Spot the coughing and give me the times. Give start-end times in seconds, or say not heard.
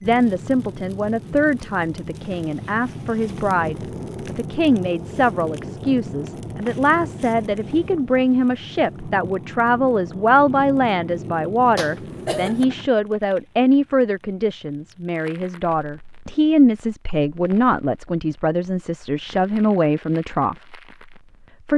11.8-12.7.